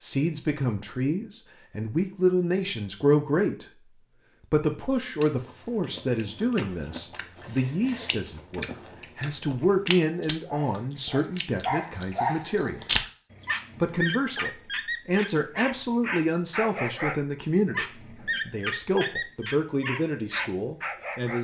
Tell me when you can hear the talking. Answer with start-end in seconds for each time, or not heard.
0.0-3.9, 4.5-12.8, 13.8-21.3.